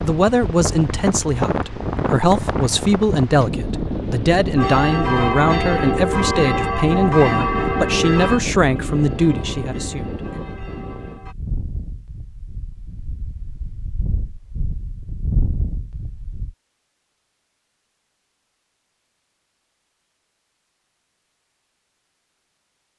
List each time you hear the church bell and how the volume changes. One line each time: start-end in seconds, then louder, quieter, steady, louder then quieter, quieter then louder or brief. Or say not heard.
4.5-11.3 quieter.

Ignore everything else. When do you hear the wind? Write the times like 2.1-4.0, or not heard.
0.0-16.6.